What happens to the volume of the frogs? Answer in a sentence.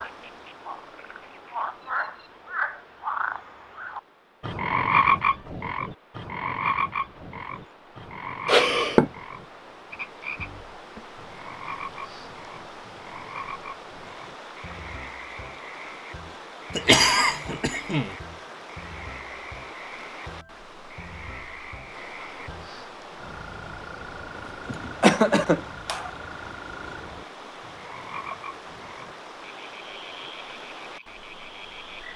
The loudness of the frogs goes down.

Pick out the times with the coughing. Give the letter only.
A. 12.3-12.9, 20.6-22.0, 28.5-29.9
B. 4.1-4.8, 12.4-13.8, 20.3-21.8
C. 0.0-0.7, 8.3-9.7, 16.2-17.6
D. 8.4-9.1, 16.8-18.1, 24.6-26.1
D.